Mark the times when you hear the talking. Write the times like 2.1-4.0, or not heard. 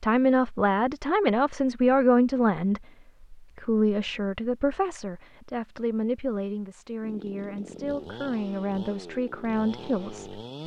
0.0-10.6.